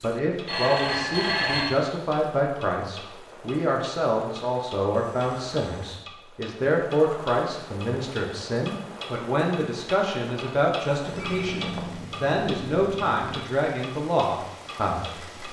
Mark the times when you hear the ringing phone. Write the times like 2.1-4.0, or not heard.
0.5-1.7, 11.1-13.4.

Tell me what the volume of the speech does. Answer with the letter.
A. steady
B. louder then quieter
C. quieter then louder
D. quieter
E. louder
A.